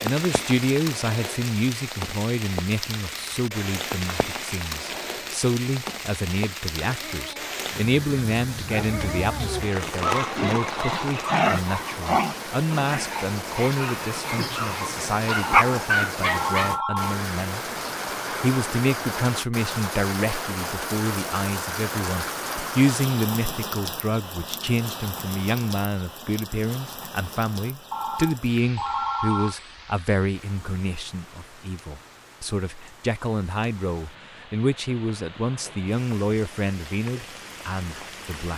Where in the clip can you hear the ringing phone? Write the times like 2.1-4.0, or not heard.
15.4-17.2, 27.9-29.6.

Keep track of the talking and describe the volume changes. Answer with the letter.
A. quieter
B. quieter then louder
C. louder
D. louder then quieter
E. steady
E.